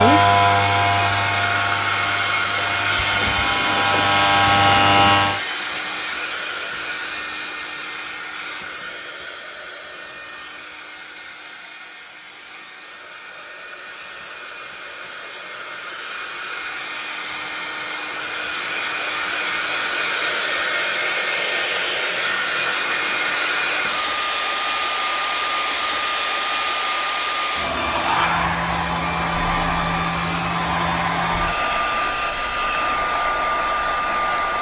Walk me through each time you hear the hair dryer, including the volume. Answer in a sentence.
You can hear the hair dryer from 0.0 to 34.5 s, getting quieter then louder.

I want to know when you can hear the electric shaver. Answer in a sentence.
You can hear the electric shaver from 0.0 to 5.4 s.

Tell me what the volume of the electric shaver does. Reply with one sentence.
The loudness of the electric shaver goes down, then up.